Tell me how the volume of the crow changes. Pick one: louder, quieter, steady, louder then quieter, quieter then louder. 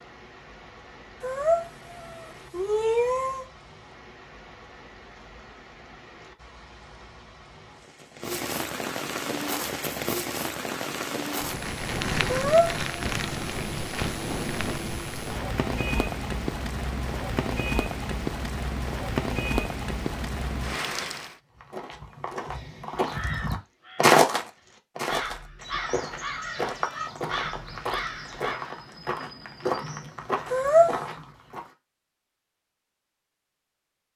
louder.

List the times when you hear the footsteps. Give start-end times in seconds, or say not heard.
21.6-31.7.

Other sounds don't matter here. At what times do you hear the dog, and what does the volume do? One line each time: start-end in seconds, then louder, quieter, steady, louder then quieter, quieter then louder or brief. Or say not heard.
not heard.